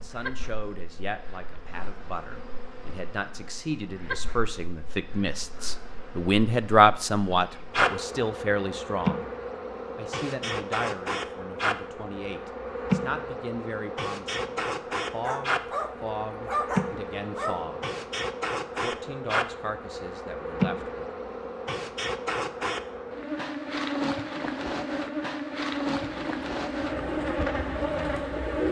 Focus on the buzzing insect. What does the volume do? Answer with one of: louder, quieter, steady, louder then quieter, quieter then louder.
louder.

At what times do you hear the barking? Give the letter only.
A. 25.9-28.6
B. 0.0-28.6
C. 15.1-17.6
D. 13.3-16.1
C.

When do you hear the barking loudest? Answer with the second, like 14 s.
17 s.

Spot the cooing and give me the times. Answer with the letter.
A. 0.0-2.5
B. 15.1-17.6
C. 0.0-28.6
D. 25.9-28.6
D.